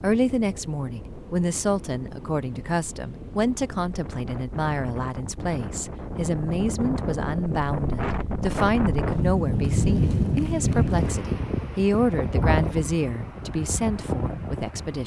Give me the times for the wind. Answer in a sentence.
You can hear the wind from 0.0 to 15.0 s.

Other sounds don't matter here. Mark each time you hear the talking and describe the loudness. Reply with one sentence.
The talking can be heard from 0.0 to 15.0 s, at a steady volume.